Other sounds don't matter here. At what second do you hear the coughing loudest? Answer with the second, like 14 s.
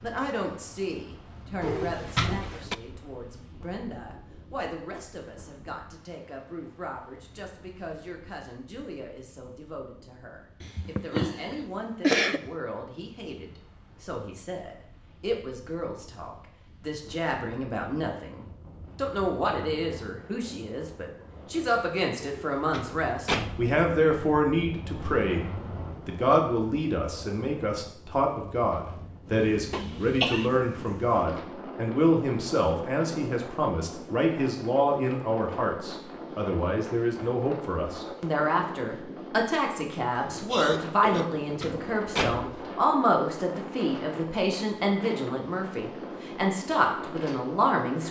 12 s.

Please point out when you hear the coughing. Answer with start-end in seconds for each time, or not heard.
10.6-12.5, 29.7-30.5, 40.2-41.3.